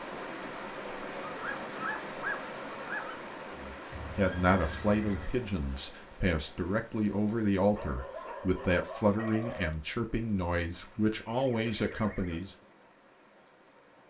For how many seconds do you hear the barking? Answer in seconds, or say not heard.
4 s.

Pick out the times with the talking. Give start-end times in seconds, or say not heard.
3.5-12.6.